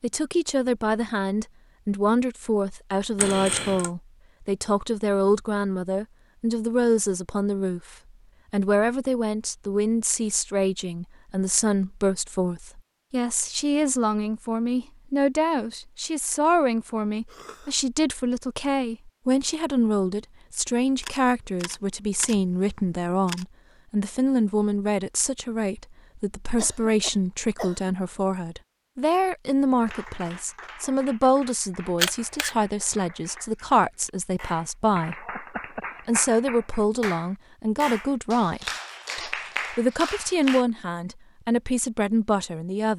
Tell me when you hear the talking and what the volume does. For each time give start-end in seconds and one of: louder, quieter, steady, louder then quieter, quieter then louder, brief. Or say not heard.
0.0-35.2 steady
36.0-42.9 steady.